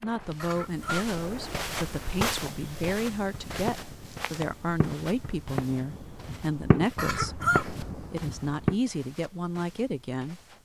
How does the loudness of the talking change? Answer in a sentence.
The volume of the talking stays about the same.